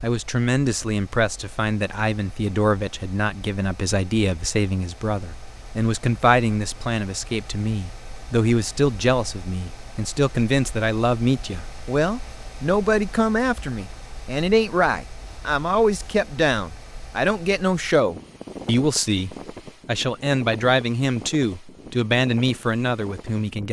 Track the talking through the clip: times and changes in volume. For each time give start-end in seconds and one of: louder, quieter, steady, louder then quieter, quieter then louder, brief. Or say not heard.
0.0-23.6 steady.